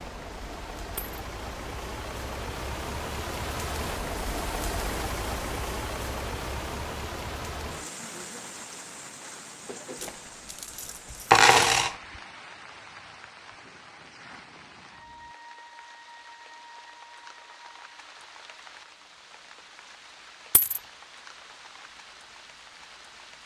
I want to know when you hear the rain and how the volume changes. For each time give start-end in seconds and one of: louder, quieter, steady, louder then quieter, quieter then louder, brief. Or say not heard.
0.0-23.4 quieter.